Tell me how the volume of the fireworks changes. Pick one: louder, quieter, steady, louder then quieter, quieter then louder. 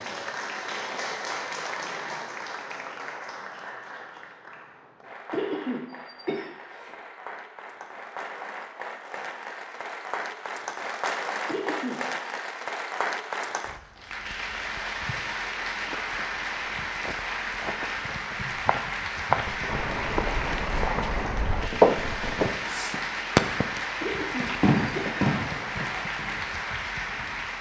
louder then quieter.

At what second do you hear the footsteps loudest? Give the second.
22 s.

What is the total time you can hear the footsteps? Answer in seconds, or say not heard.
10 s.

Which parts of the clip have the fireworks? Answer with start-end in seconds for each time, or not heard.
19.4-26.5.